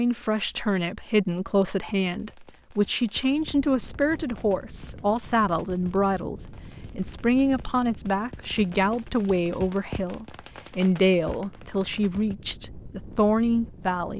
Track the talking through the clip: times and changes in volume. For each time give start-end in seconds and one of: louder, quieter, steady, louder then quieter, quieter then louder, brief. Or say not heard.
0.0-14.1 steady.